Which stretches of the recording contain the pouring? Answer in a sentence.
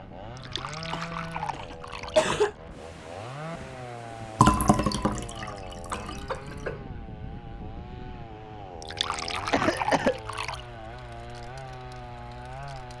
The pouring can be heard from 0.3 to 2.5 s, from 4.3 to 6.3 s and from 8.8 to 10.6 s.